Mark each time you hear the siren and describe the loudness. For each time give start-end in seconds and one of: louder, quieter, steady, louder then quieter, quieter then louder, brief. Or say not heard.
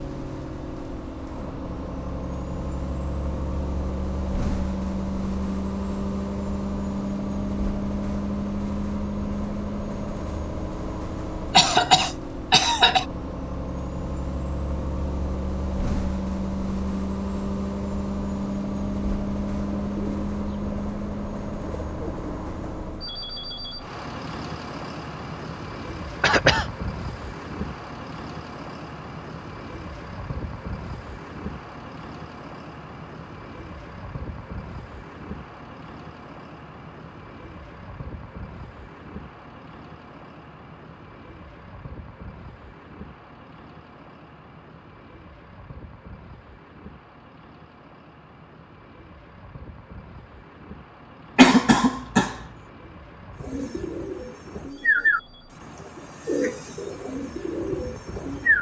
not heard.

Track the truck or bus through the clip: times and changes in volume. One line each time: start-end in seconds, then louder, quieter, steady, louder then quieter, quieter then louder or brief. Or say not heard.
0.0-58.5 quieter.